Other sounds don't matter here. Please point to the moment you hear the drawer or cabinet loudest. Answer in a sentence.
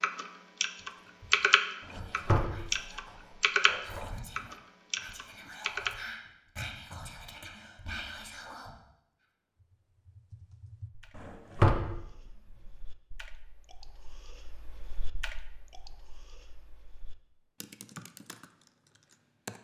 The loudest moment of the drawer or cabinet is at 12 seconds.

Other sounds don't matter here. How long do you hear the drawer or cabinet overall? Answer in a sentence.
The drawer or cabinet can be heard for 3 seconds in total.